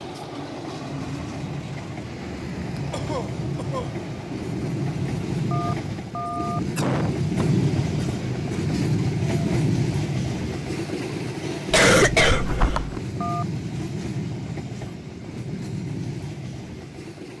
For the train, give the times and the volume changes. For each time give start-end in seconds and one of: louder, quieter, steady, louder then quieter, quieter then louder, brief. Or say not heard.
0.0-17.3 louder then quieter.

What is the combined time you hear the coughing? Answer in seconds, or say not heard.
4 s.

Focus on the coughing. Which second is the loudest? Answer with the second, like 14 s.
12 s.